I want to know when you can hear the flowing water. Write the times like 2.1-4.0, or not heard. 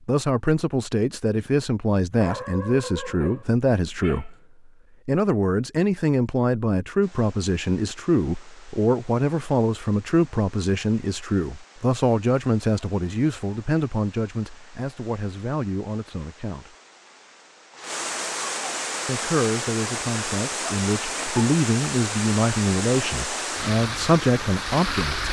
7.0-25.2.